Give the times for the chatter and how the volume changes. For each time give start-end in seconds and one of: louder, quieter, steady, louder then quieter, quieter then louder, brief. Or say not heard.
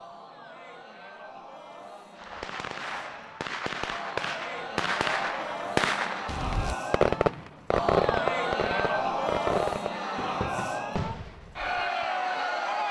0.0-12.8 louder.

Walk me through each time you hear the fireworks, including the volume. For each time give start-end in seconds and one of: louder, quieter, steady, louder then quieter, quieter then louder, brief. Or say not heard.
2.1-12.1 louder then quieter.